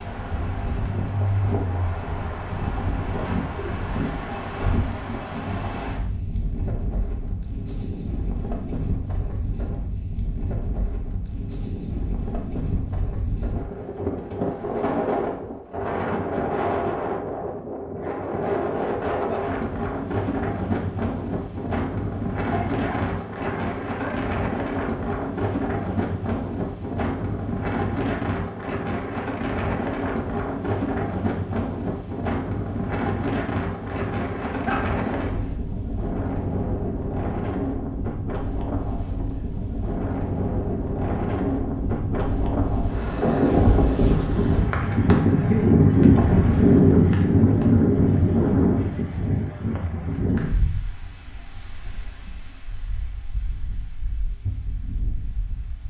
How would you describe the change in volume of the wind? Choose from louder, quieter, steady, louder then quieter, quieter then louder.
louder.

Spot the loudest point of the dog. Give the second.
35 s.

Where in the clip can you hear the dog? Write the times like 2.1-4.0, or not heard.
22.4-24.3, 33.8-35.5.